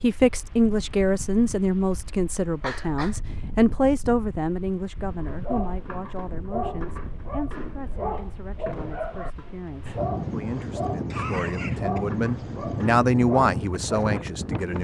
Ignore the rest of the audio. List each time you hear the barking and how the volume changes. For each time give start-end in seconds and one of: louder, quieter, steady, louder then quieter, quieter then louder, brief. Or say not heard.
5.1-14.2 steady.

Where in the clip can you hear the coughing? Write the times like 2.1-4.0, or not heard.
2.6-3.2, 11.1-12.4.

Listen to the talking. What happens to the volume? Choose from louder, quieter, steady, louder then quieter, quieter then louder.
quieter then louder.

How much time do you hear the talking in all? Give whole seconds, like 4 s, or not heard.
15 s.